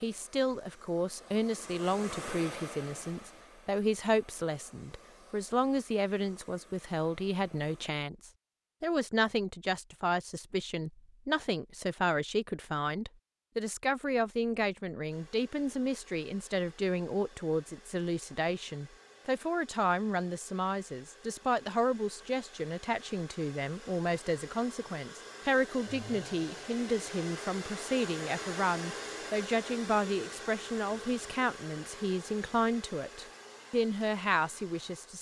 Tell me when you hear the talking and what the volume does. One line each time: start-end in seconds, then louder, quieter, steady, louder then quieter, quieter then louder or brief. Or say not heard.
0.0-35.1 steady.